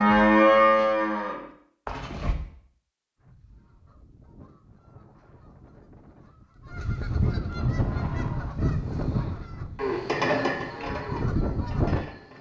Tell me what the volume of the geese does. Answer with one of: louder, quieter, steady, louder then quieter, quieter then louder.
louder.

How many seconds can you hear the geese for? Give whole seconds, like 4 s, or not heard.
9 s.